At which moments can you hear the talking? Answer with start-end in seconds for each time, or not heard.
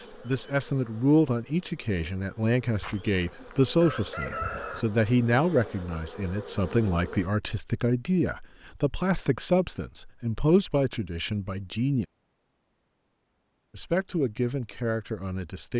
0.0-12.1, 13.7-15.7.